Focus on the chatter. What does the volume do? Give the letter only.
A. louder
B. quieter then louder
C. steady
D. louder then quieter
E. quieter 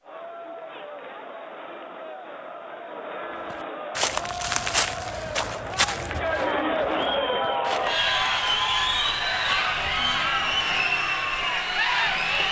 A.